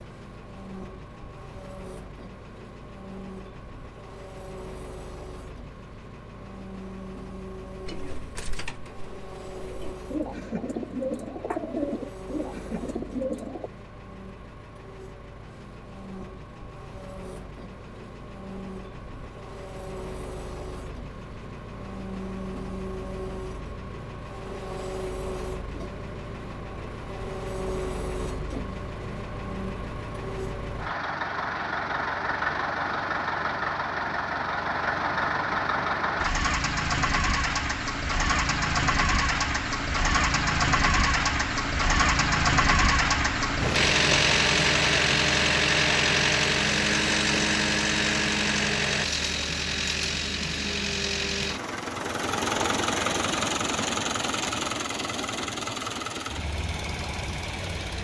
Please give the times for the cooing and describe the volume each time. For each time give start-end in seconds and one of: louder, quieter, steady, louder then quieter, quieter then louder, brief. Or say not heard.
7.8-13.7 louder.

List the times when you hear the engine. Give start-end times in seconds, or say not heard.
0.0-57.9.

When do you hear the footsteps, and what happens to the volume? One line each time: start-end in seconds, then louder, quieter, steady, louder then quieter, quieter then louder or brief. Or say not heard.
not heard.